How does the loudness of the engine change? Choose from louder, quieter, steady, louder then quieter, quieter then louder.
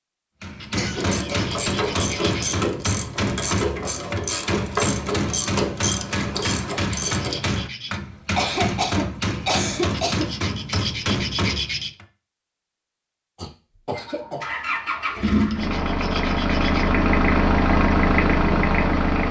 louder.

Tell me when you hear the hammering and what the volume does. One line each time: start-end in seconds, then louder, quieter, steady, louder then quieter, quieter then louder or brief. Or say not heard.
0.4-12.1 steady.